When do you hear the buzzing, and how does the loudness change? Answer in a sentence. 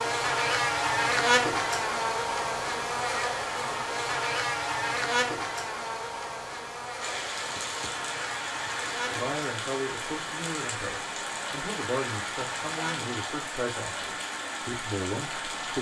You can hear the buzzing from 0.0 to 13.2 s, getting quieter.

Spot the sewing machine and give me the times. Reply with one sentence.
You can't hear the sewing machine here.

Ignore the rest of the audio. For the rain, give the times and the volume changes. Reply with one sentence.
The rain can be heard from 7.0 to 15.7 s, at a steady volume.